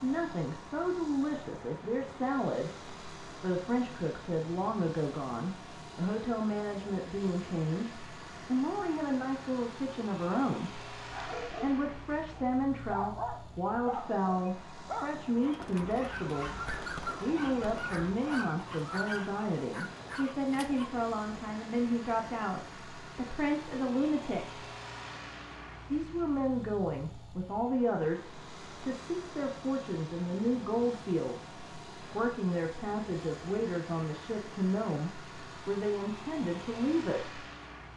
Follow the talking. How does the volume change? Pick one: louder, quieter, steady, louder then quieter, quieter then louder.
steady.